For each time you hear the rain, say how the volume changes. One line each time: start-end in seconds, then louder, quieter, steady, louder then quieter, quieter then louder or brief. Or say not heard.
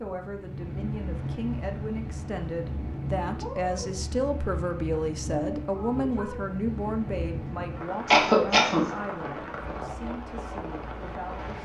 0.0-11.5 steady.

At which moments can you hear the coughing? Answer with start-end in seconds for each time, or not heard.
8.1-8.8.